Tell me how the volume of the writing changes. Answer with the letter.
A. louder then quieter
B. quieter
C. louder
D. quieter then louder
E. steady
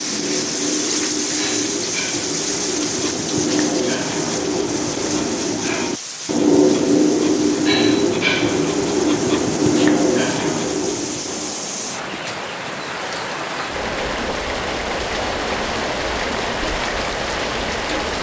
C.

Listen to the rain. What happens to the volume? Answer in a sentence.
The volume of the rain goes down, then up.